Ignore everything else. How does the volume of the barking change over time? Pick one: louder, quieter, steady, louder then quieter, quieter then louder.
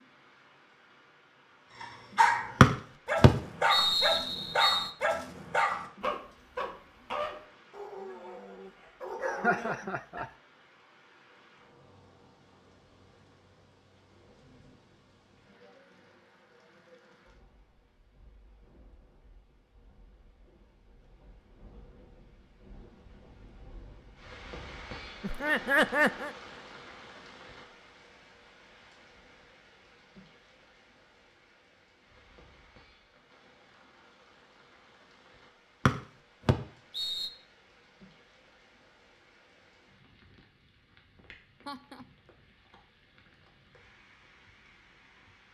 quieter.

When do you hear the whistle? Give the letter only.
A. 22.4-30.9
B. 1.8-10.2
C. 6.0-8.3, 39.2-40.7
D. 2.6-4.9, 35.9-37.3
D.